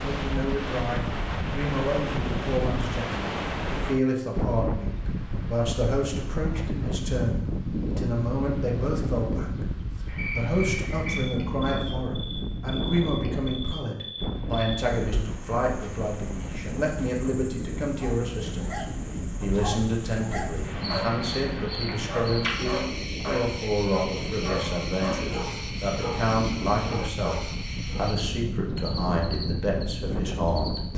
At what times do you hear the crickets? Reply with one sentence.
You can hear the crickets from 10.1 to 30.8 s.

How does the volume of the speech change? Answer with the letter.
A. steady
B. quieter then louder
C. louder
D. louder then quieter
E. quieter
A.